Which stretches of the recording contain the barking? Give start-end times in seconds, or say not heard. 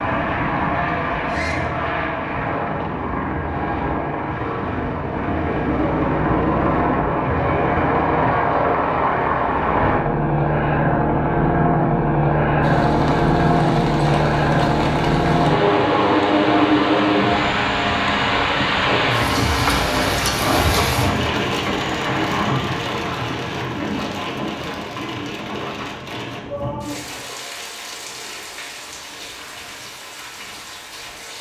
not heard.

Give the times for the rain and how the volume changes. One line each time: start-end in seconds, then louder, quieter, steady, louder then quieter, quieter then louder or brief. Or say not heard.
12.6-31.3 louder then quieter.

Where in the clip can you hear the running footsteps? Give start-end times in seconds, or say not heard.
not heard.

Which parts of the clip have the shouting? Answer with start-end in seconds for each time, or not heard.
1.2-1.8, 26.4-27.4.